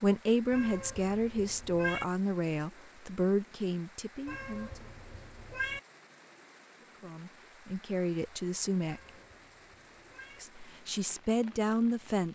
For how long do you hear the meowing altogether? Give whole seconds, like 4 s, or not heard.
5 s.